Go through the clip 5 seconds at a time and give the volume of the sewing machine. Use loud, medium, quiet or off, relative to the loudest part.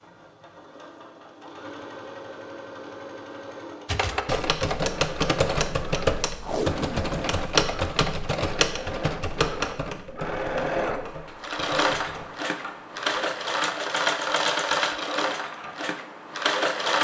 quiet, medium, loud, loud.